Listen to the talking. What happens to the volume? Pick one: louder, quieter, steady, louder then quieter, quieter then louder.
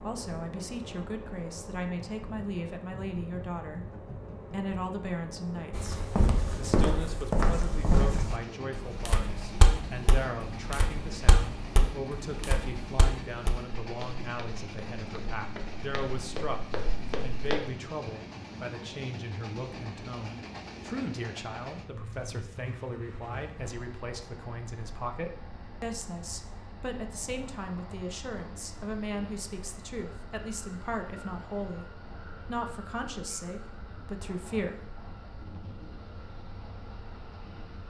steady.